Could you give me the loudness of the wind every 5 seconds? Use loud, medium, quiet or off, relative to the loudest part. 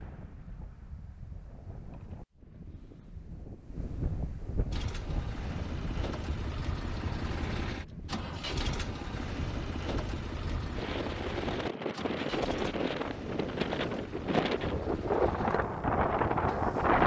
quiet, quiet, medium, loud.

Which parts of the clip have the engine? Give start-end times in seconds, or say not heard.
4.7-17.0.